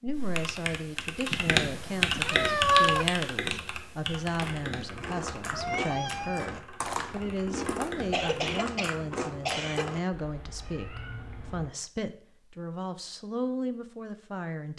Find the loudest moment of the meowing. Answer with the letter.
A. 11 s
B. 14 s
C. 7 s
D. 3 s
D.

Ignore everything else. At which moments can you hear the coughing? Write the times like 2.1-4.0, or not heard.
7.9-9.9.